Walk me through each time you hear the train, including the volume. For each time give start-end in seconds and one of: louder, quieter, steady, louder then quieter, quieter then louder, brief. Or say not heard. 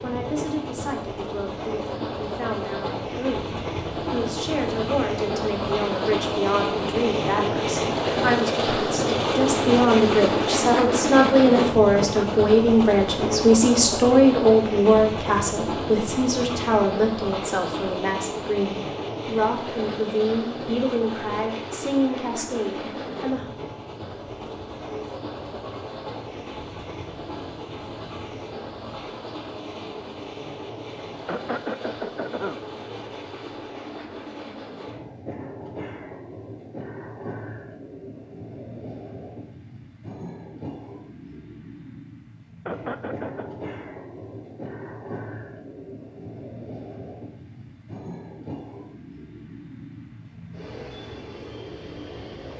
0.0-52.5 quieter.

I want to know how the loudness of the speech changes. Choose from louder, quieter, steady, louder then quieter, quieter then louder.
louder then quieter.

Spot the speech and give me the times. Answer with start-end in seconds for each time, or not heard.
0.0-23.5.